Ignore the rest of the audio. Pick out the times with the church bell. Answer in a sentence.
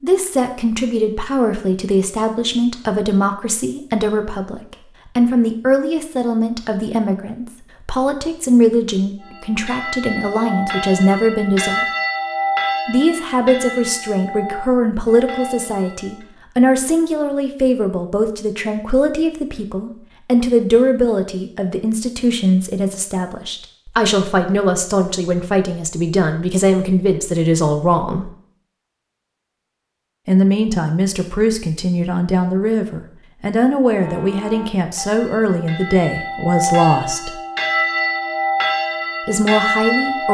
The church bell can be heard from 9.2 to 16.2 s and from 34.0 to 40.2 s.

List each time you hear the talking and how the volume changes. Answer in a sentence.
You can hear the talking from 0.0 to 11.8 s, at a steady volume; from 12.8 to 28.3 s, at a steady volume; from 30.2 to 37.4 s, at a steady volume; and briefly from 39.2 to 40.2 s.